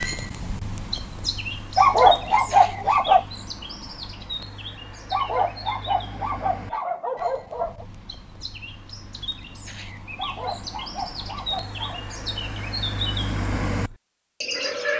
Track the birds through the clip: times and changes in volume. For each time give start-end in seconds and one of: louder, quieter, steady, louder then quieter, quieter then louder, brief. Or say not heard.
0.0-14.9 quieter then louder.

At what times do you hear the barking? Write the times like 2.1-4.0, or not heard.
1.8-3.2, 5.1-7.8, 10.2-12.0.